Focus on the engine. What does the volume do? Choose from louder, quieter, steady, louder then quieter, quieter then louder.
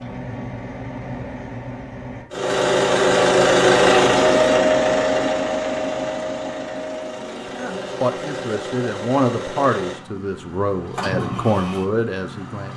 louder then quieter.